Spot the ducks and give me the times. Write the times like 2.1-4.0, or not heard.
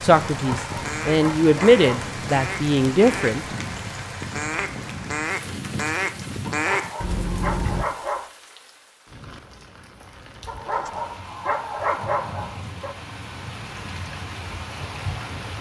0.1-7.8.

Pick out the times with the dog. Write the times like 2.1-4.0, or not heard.
0.3-2.1, 6.5-8.3, 10.4-12.9.